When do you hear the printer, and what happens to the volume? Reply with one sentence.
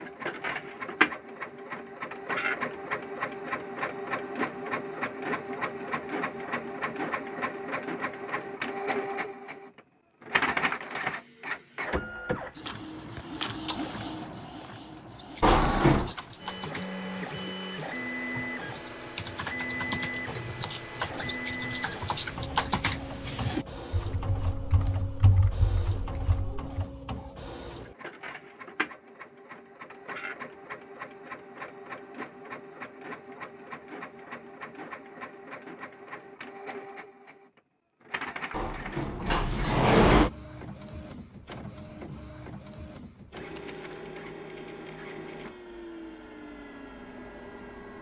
You can hear the printer from 0.0 to 47.9 s, getting quieter.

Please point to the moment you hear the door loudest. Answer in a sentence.
The loudest moment of the door is at 40 seconds.